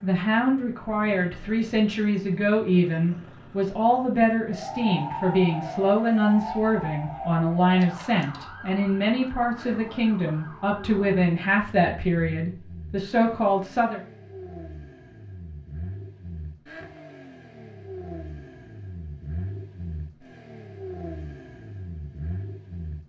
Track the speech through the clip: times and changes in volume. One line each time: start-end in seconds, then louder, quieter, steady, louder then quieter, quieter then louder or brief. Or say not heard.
0.0-14.0 steady.